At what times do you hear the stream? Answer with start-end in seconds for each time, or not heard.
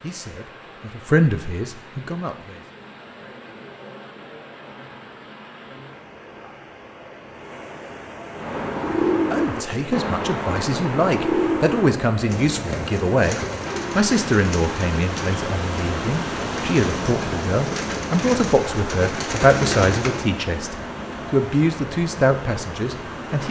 0.0-23.4.